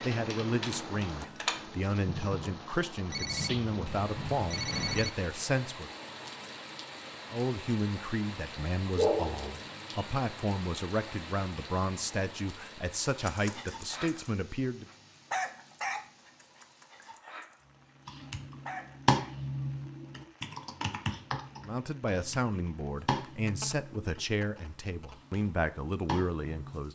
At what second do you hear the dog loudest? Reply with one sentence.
The volume of the dog peaks at 15 seconds.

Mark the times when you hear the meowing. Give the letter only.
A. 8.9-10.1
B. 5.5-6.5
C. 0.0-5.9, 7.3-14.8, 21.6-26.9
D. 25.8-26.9
A.